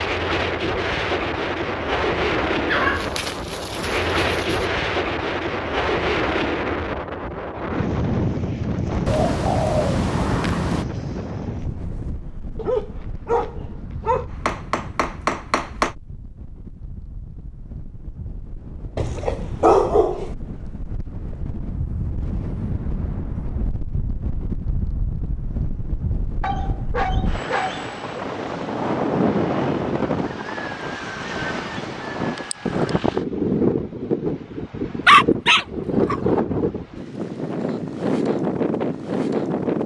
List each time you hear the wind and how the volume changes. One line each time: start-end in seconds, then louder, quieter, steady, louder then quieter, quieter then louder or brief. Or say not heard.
0.0-39.8 quieter then louder.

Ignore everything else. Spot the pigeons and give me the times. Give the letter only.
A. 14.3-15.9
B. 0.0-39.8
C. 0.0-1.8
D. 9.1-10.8
D.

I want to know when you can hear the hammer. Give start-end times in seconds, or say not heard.
14.3-15.9.